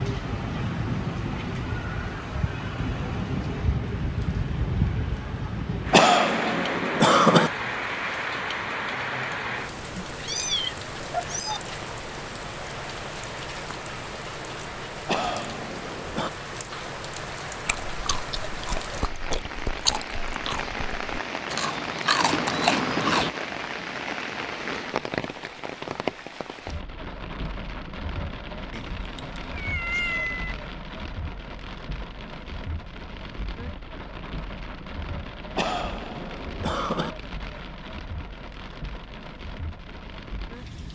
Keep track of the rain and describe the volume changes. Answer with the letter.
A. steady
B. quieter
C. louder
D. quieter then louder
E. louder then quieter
B.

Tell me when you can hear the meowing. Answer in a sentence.
The meowing can be heard from 10.0 to 11.6 s and from 28.7 to 30.6 s.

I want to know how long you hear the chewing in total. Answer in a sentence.
You can hear the chewing for 6 seconds altogether.